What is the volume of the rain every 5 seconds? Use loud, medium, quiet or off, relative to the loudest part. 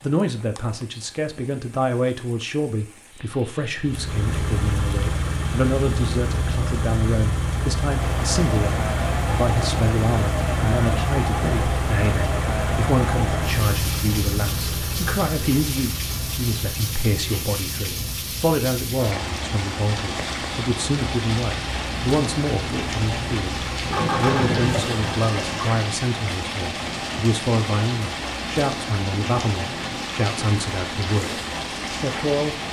quiet, loud, loud, loud, loud, loud, loud.